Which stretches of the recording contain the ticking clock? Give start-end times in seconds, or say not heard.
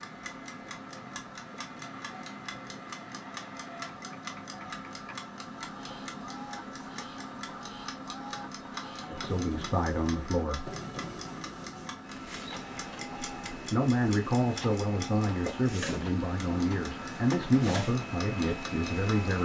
0.0-19.3.